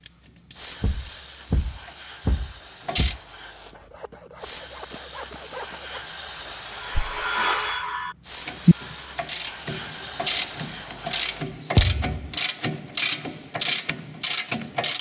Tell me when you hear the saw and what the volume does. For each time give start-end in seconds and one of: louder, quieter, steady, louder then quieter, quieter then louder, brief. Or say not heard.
3.6-9.2 louder then quieter.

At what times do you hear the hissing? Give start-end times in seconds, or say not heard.
0.2-11.6.